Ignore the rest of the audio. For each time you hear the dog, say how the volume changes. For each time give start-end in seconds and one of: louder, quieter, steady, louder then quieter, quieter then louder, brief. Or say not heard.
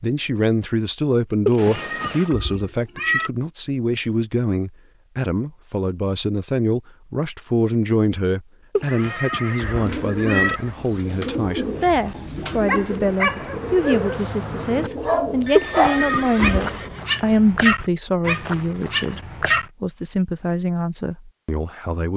12.5-19.6 louder then quieter.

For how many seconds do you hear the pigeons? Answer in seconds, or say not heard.
7 s.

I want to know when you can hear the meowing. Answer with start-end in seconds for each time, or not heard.
1.4-3.3, 8.8-10.6, 15.6-16.6.